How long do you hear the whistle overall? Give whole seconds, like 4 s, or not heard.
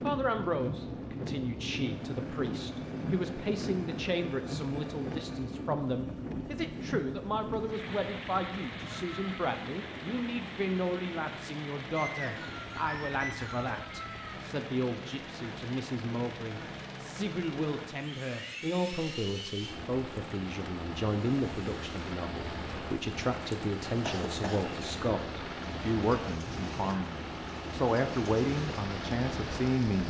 2 s.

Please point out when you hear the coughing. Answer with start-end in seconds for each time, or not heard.
24.1-24.6.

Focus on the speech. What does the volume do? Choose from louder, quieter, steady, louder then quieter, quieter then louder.
steady.